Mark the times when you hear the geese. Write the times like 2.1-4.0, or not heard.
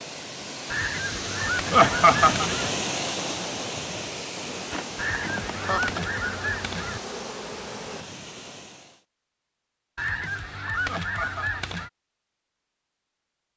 0.7-2.7, 5.0-7.0, 9.9-11.9.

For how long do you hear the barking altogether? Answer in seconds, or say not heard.
not heard.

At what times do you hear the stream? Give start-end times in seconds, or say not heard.
0.0-9.1.